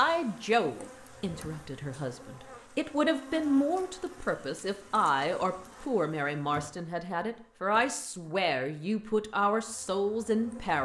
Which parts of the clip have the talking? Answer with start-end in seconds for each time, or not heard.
0.0-10.8.